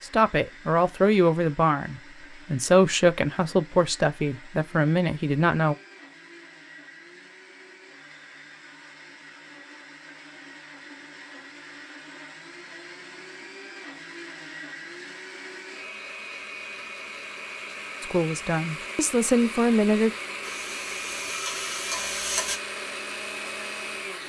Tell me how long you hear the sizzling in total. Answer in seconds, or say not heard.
2 s.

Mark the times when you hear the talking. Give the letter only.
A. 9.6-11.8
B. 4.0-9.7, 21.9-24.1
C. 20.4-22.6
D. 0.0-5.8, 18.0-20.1
D.